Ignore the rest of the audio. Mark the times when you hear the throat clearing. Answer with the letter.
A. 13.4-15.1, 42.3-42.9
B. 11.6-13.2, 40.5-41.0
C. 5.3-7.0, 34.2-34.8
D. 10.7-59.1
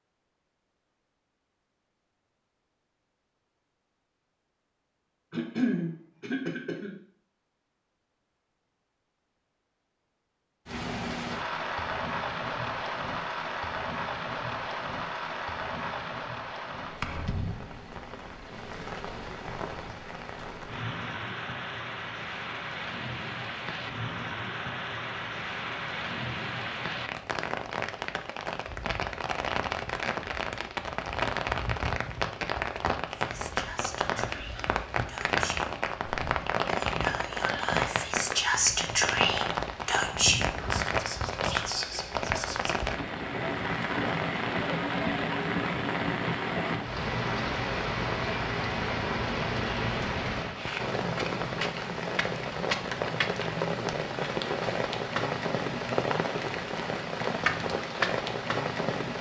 C.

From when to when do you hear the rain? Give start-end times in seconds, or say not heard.
10.7-59.1.